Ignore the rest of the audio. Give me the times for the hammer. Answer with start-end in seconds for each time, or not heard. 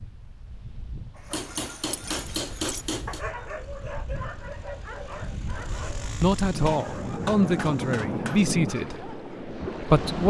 1.3-3.2, 6.6-8.5.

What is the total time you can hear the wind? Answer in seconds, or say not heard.
10 s.